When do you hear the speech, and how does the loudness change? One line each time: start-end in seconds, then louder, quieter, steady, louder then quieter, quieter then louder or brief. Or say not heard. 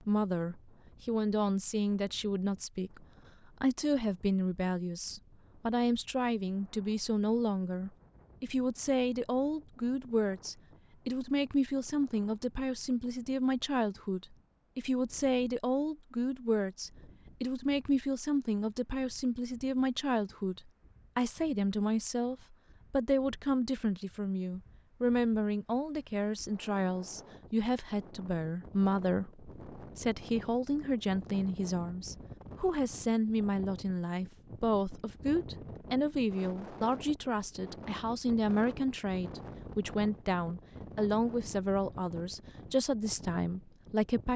0.0-44.3 steady.